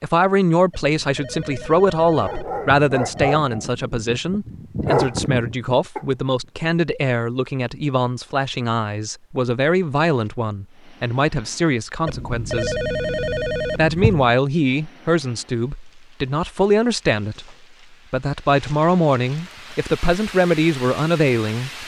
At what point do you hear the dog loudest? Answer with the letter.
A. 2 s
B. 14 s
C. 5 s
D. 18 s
C.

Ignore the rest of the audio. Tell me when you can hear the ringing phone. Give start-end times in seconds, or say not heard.
0.7-3.4, 12.1-14.3.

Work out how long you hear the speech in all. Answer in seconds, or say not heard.
21 s.